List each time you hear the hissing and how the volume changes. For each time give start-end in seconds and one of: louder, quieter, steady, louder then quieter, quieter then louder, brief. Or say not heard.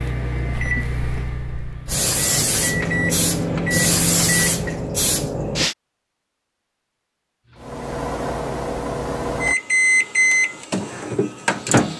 0.0-5.8 louder.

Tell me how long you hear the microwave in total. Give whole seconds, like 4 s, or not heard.
9 s.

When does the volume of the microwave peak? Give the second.
10 s.